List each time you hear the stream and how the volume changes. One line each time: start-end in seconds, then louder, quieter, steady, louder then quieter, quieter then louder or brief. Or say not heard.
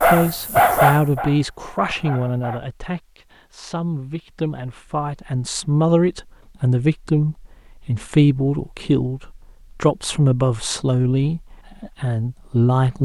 not heard.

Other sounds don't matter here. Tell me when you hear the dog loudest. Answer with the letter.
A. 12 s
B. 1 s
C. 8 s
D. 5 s
B.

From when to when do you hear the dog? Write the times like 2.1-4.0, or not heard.
0.0-2.6.